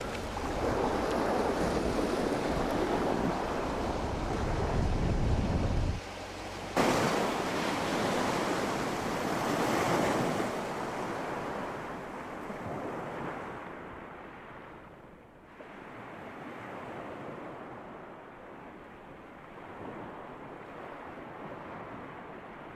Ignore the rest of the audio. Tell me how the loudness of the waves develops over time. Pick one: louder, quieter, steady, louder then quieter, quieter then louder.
quieter.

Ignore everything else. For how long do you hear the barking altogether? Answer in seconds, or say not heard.
not heard.